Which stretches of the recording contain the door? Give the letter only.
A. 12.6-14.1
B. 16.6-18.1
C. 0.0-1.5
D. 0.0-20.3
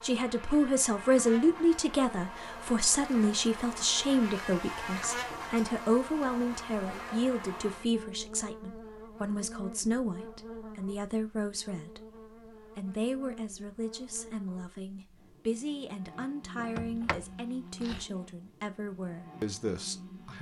B.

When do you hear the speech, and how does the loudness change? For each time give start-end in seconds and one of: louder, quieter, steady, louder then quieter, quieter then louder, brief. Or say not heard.
0.0-20.3 quieter.